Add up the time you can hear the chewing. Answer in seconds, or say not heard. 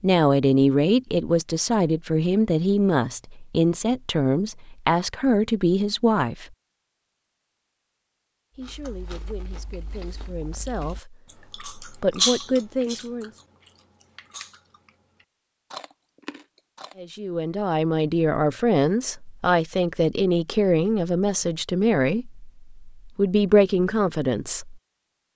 8 s.